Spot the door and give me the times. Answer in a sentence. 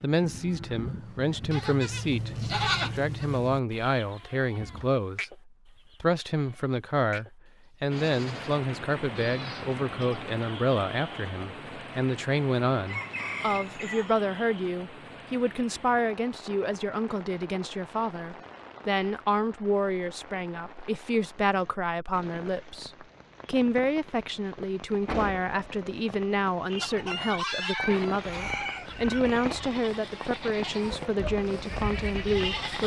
You can hear the door from 4.2 to 5.0 s and from 25.1 to 25.5 s.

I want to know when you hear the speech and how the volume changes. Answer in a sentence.
You can hear the speech from 0.0 to 32.8 s, at a steady volume.